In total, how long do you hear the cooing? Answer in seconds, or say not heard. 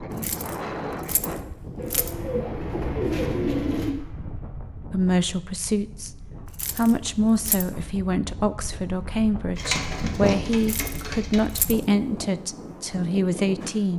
4 s.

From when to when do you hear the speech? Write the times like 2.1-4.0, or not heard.
4.9-6.1, 6.8-13.9.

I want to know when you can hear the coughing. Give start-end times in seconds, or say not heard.
not heard.